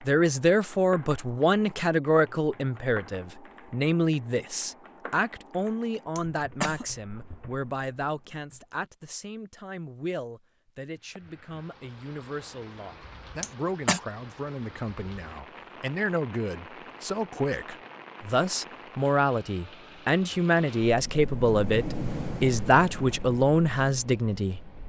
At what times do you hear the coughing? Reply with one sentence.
You can hear the coughing from 6.2 to 6.8 s and from 13.4 to 14.0 s.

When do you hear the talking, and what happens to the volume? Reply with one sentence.
You can hear the talking from 0.1 to 24.6 s, getting quieter then louder.